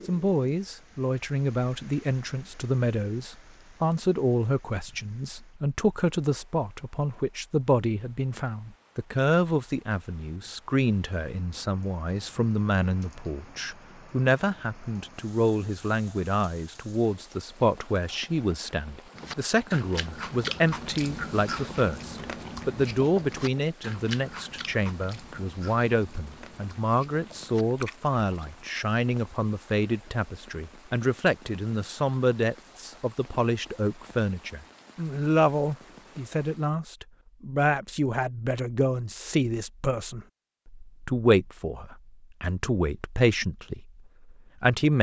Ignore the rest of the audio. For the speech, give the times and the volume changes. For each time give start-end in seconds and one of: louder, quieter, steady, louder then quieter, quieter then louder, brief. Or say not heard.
0.1-44.9 steady.